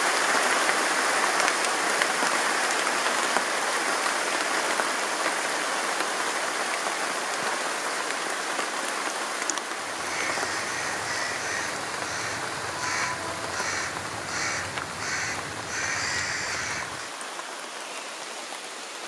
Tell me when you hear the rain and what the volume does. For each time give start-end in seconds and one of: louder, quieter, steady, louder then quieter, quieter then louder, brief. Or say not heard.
0.0-19.0 quieter.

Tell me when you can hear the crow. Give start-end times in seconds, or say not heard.
9.8-17.1.